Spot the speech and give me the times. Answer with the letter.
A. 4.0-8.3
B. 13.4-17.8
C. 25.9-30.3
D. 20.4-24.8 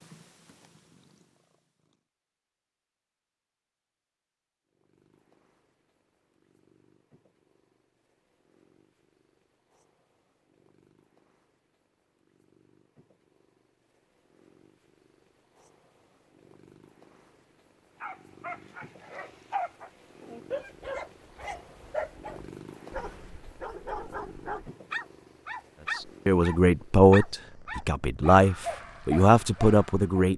C.